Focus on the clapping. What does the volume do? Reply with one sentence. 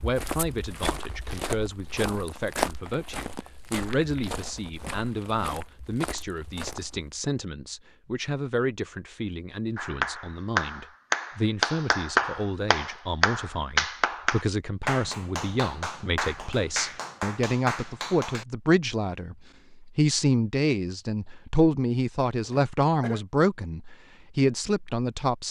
The volume of the clapping goes down.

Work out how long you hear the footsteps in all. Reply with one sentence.
You can hear the footsteps for 7 seconds altogether.